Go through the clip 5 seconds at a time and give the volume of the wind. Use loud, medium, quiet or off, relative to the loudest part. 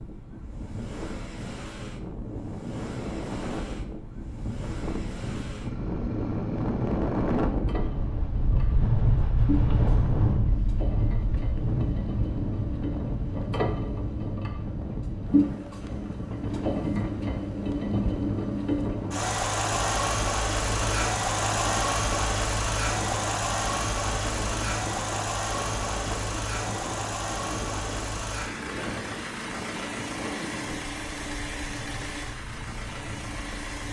medium, loud, loud, medium, medium, medium, quiet.